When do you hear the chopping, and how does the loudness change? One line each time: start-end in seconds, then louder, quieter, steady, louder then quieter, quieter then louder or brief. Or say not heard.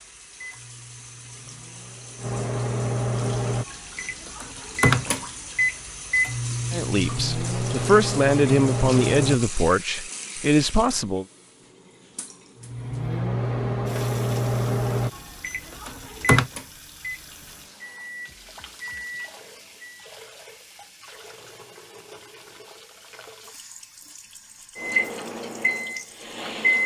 not heard.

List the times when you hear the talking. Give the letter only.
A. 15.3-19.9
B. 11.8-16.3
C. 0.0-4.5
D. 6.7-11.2
D.